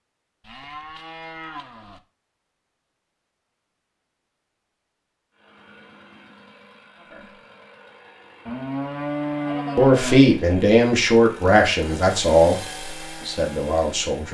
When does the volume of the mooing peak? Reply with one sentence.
The volume of the mooing peaks at 10 seconds.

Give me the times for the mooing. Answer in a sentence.
You can hear the mooing from 0.4 to 2.0 s and from 8.4 to 10.2 s.